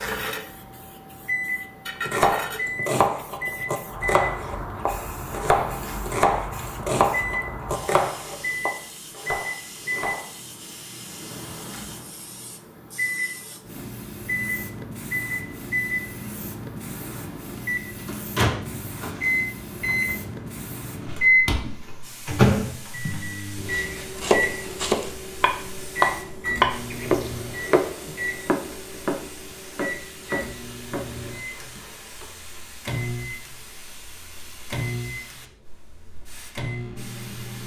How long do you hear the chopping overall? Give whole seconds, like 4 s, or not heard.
17 s.